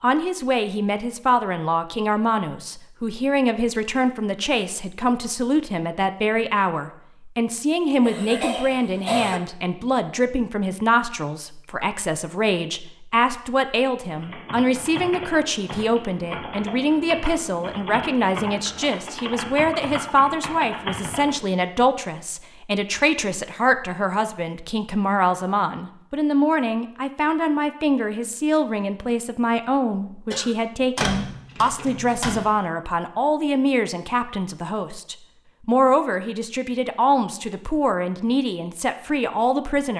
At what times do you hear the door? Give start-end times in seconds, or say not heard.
30.9-32.5.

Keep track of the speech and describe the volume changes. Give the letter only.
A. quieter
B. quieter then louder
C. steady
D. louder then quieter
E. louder
C.